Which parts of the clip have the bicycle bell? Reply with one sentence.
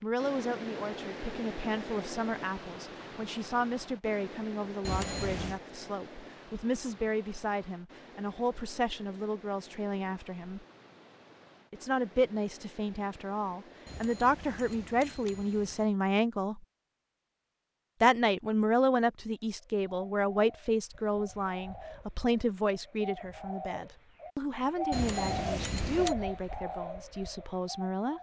You can hear the bicycle bell from 4.8 to 5.6 s, from 13.8 to 15.8 s and from 24.9 to 26.1 s.